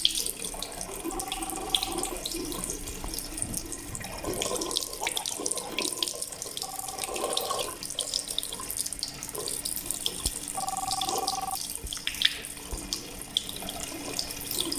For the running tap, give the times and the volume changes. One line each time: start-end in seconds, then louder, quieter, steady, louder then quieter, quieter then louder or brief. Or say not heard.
0.0-14.7 steady.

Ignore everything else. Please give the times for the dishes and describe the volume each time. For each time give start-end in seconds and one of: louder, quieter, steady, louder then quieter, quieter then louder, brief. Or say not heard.
not heard.